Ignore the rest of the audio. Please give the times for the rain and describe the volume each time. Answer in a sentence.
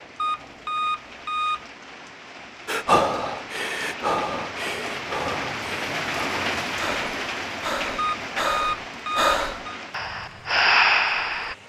The rain can be heard from 0.0 to 11.6 s, getting louder then quieter.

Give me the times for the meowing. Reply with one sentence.
You can't hear the meowing here.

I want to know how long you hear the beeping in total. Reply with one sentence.
The beeping can be heard for 3 seconds in total.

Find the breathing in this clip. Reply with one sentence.
You can hear the breathing from 2.6 to 11.6 s.